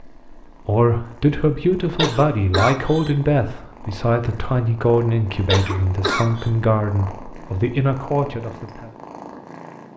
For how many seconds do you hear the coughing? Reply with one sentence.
The coughing can be heard for 2 seconds in total.